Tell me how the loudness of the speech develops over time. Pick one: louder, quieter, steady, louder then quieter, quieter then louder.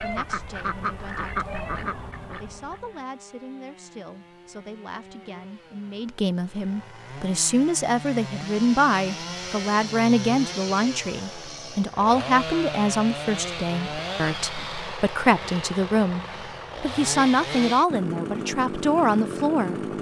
louder.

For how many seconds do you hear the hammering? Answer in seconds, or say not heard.
not heard.